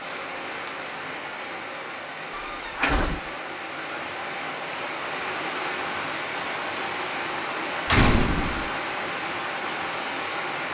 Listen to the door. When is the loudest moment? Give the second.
8 s.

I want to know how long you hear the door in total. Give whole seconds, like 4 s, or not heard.
2 s.